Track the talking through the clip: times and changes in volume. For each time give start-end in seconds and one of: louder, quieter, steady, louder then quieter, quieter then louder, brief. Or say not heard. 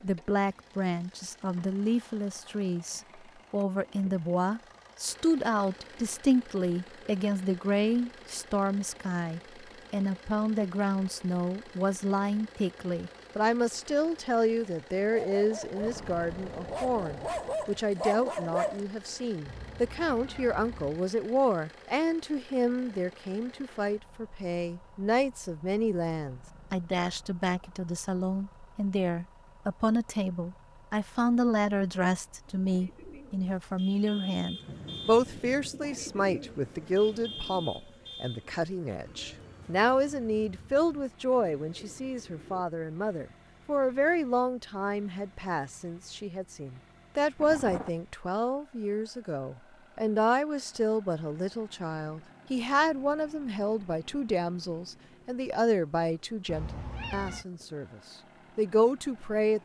0.0-59.6 steady.